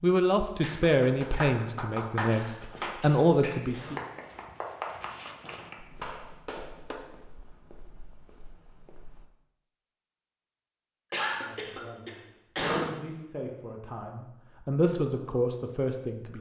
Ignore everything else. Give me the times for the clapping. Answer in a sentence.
You can hear the clapping from 0.6 to 7.0 s.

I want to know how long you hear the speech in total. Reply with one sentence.
The speech can be heard for 9 seconds in total.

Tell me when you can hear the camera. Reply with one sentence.
The camera can't be heard in this clip.